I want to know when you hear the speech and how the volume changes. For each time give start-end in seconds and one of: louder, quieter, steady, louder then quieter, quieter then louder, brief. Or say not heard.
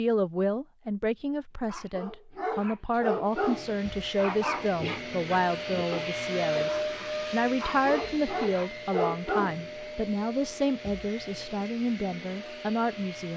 0.0-13.3 steady.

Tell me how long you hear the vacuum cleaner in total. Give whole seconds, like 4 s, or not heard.
10 s.